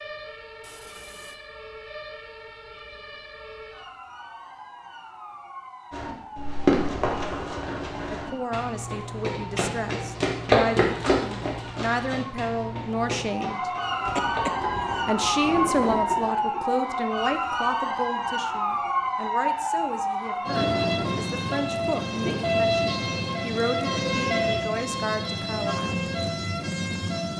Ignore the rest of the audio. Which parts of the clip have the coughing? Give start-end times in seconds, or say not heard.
0.6-1.4, 14.1-15.1.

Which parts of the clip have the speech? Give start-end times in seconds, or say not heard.
8.1-13.7, 15.1-26.0.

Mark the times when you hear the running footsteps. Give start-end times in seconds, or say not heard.
5.9-14.7.